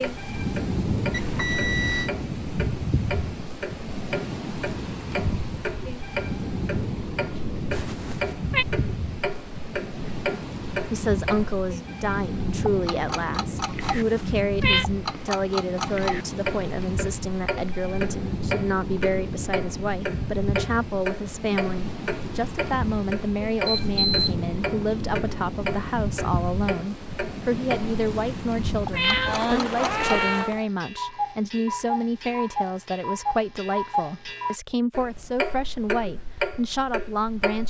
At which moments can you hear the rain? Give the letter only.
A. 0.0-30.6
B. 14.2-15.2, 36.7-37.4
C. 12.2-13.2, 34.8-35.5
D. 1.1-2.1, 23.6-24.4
A.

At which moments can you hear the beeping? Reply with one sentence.
The beeping can be heard from 1.1 to 2.1 s and from 23.6 to 24.4 s.